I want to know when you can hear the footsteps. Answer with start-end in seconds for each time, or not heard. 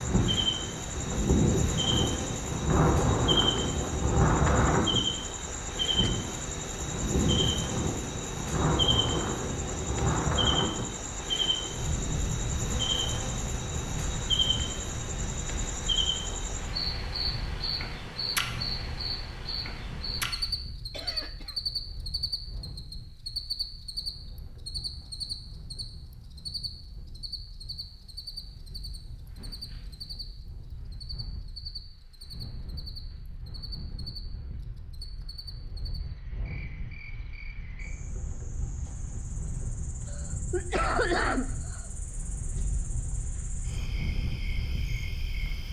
not heard.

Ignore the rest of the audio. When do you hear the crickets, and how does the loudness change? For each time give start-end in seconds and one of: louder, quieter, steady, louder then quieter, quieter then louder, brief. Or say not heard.
0.0-45.6 quieter.